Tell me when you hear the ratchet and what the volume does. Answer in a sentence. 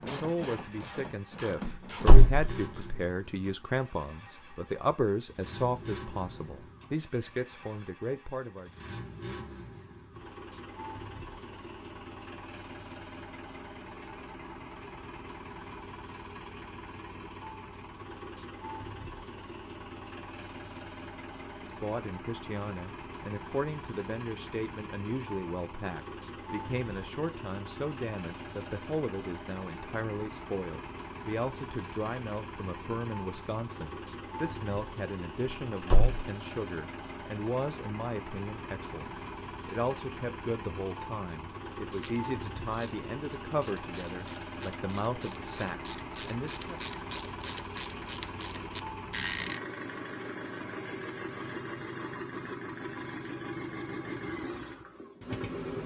The ratchet can be heard briefly from 0.0 to 2.9 s; and from 41.9 to 49.6 s, getting louder.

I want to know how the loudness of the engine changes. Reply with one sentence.
The volume of the engine goes up.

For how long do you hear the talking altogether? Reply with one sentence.
The talking can be heard for 34 seconds in total.